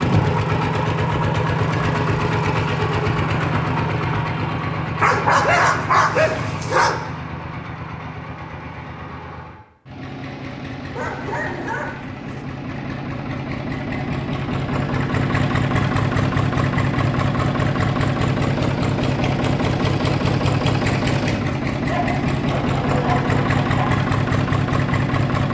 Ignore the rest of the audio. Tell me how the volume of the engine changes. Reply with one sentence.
The volume of the engine goes down, then up.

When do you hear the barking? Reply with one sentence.
You can hear the barking from 5.0 to 7.0 s, from 10.9 to 12.4 s and from 21.9 to 23.9 s.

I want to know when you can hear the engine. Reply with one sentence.
You can hear the engine from 0.0 to 25.4 s.